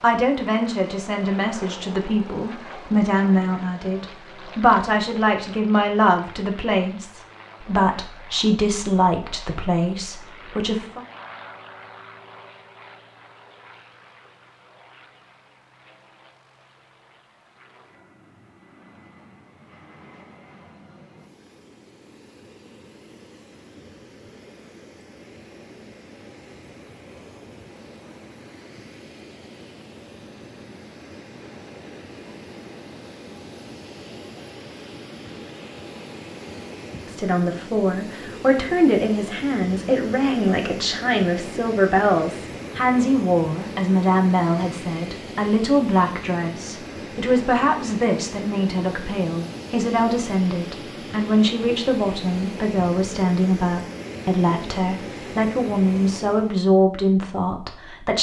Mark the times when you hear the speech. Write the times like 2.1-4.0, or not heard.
0.0-11.0, 37.0-58.1.